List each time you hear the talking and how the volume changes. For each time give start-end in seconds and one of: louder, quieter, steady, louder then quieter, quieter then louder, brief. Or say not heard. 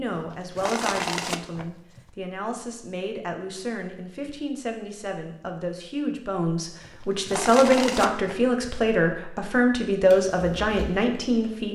0.0-11.7 louder.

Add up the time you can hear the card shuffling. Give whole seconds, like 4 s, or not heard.
4 s.